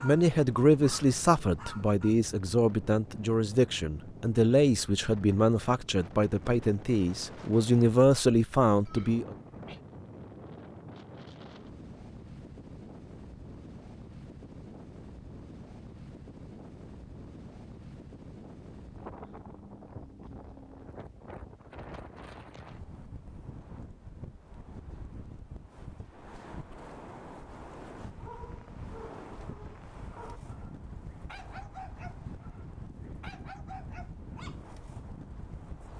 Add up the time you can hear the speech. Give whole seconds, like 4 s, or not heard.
9 s.